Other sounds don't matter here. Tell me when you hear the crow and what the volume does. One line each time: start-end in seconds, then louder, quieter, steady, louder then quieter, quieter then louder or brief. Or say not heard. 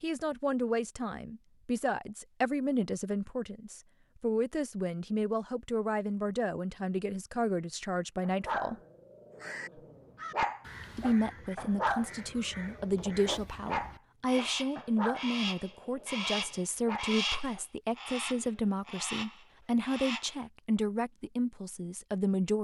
9.3-20.4 louder then quieter.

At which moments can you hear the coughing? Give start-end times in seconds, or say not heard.
not heard.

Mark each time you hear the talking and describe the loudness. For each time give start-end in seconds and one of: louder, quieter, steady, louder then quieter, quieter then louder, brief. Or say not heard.
0.0-8.8 steady
10.9-22.5 steady.